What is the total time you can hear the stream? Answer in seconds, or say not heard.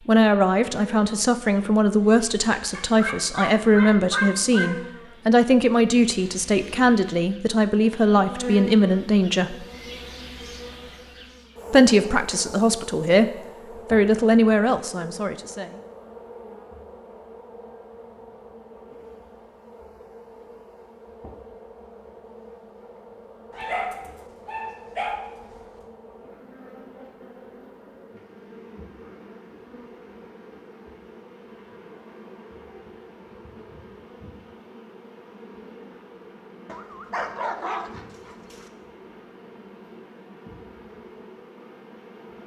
not heard.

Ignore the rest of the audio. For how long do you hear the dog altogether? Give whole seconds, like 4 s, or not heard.
6 s.